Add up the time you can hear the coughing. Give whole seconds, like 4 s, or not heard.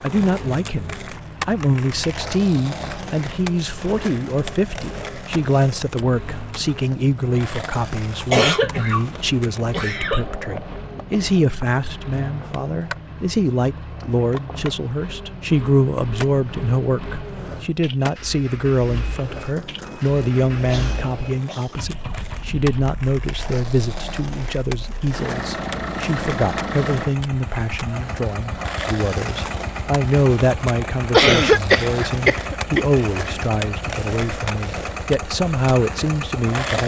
4 s.